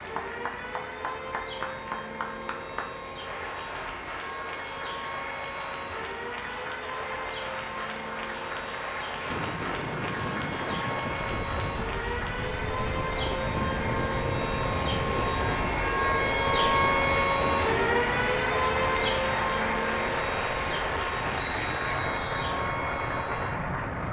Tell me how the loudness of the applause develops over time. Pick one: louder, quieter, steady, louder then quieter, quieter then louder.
louder.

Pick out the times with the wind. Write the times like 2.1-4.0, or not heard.
9.1-24.0.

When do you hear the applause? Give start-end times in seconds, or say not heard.
0.0-24.0.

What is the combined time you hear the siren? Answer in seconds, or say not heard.
24 s.